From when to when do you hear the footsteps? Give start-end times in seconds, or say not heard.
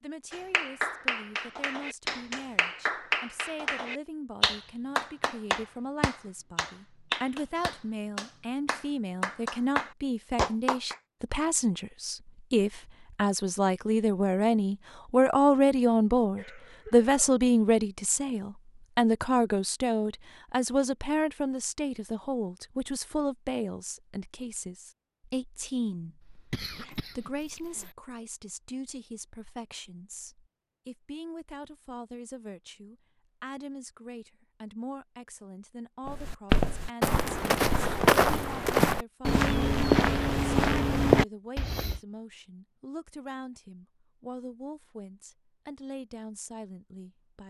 36.0-42.0.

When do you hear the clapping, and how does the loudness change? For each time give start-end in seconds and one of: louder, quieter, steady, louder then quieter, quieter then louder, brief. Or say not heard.
0.3-10.9 steady.